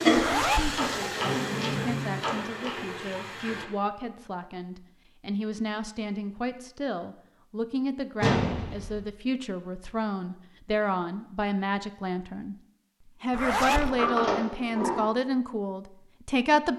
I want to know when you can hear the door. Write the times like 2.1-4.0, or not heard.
0.8-2.7, 8.2-9.0, 13.6-15.1.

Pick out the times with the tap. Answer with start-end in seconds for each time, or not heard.
0.0-3.6.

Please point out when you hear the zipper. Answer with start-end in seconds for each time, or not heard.
0.1-0.8, 13.3-13.9.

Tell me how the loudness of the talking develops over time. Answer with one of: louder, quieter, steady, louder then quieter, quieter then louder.
louder.